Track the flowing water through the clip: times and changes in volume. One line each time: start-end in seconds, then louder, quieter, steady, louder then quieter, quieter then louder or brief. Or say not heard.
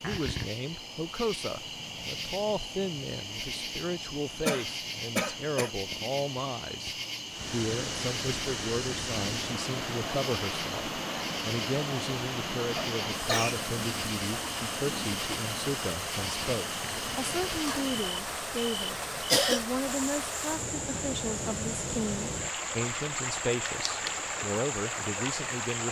7.3-25.8 steady.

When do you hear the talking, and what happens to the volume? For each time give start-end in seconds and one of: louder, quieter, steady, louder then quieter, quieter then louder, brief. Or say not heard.
0.0-25.8 steady.